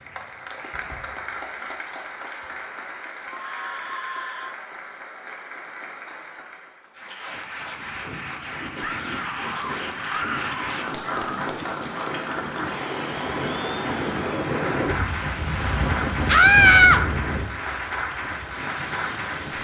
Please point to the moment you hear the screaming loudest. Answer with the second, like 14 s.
17 s.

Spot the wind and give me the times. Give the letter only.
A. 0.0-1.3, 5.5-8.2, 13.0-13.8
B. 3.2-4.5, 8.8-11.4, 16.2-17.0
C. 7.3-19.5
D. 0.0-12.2
C.